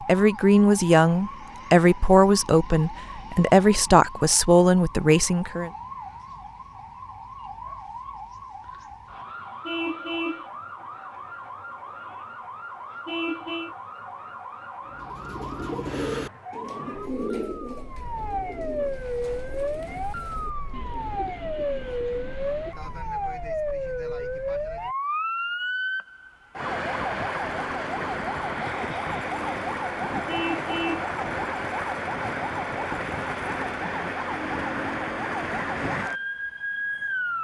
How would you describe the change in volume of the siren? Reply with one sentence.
The loudness of the siren goes up.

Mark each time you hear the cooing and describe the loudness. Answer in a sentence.
The cooing can be heard from 14.9 to 22.9 s, getting quieter.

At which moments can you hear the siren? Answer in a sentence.
You can hear the siren from 0.0 to 37.3 s.